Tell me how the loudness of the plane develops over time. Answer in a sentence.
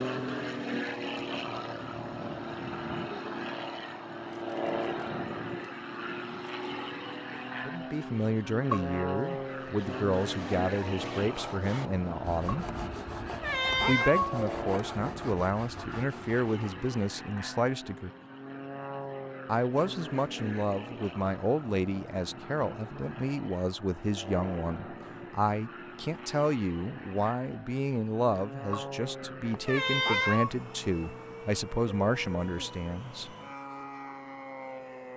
The loudness of the plane goes down.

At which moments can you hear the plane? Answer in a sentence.
The plane can be heard from 0.0 to 35.1 s.